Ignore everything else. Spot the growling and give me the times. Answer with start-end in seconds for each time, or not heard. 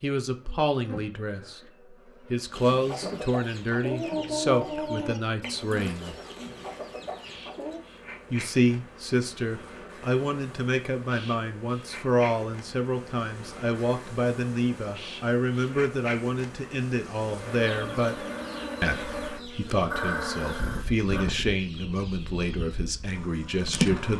19.9-21.2.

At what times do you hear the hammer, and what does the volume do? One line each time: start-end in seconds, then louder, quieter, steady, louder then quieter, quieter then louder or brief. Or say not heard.
not heard.